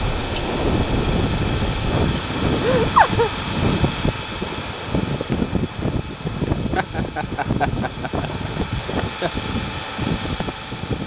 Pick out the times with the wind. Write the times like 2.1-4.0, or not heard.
0.0-11.0.